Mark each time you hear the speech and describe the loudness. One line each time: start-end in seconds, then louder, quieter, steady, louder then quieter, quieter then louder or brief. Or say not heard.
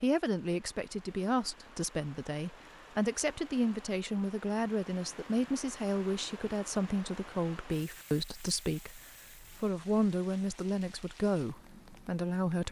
0.0-12.6 steady.